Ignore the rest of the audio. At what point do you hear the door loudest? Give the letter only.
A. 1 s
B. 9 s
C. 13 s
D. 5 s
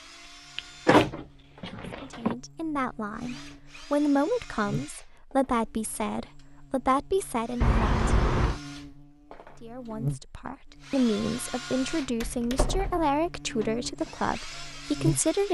A.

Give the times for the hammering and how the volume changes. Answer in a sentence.
The hammering can't be heard in this clip.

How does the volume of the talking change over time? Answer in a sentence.
The volume of the talking stays about the same.